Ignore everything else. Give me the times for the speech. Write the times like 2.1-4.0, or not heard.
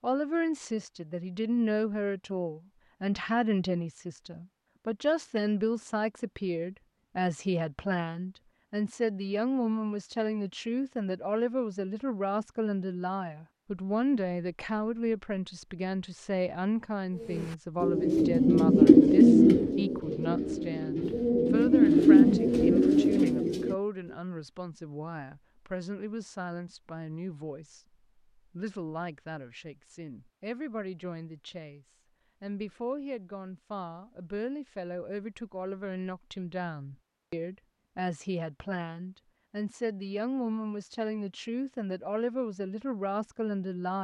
0.0-43.9.